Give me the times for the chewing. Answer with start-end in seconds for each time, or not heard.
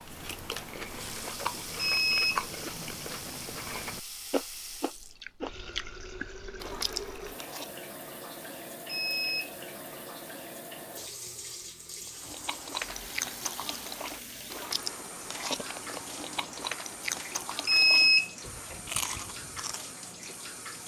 0.0-7.8, 12.1-19.9.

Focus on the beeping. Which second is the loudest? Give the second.
18 s.